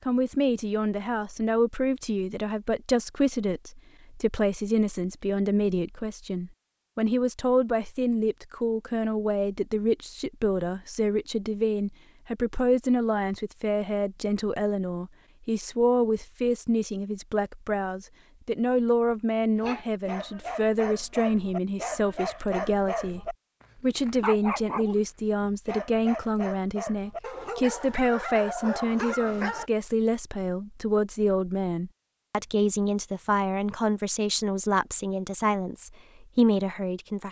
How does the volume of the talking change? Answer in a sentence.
The volume of the talking stays about the same.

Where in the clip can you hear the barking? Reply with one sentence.
You can hear the barking from 19.6 to 29.6 s.